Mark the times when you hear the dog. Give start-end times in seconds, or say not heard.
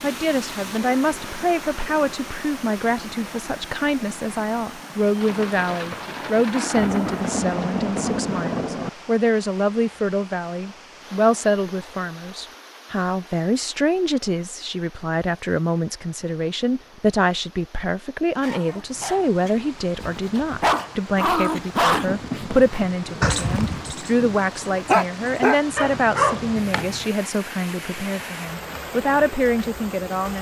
18.4-27.1.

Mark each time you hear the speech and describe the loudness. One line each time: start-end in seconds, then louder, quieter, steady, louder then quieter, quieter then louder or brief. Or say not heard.
0.0-30.3 steady.